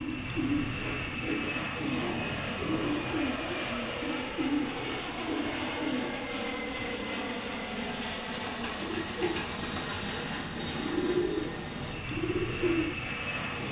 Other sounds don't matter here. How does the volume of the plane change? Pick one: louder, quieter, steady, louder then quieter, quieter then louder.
steady.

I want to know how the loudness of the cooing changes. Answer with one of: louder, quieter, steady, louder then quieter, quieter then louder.
steady.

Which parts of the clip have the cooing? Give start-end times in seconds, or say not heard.
0.0-6.1, 8.4-13.6.